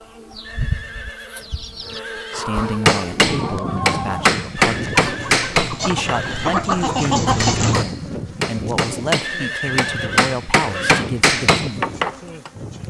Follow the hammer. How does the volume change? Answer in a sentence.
The loudness of the hammer goes down, then up.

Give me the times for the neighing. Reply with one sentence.
The neighing can be heard from 0.4 to 2.5 s, from 4.6 to 6.5 s and from 9.2 to 11.1 s.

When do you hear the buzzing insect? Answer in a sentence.
The buzzing insect can be heard from 0.0 to 12.8 s.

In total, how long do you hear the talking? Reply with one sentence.
You can hear the talking for 9 seconds altogether.